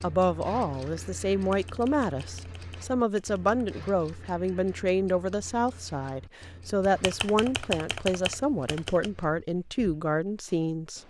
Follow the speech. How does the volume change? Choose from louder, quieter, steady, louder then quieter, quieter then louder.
steady.